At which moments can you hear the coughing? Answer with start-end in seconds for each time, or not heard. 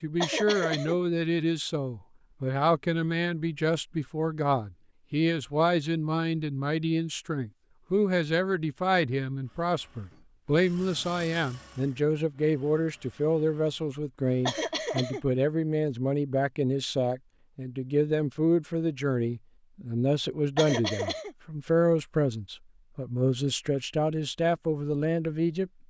0.2-0.9, 14.4-15.2, 20.6-21.4.